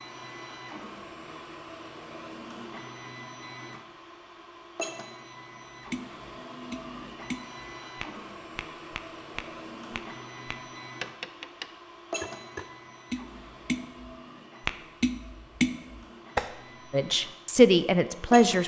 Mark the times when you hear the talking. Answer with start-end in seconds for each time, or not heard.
16.9-18.6.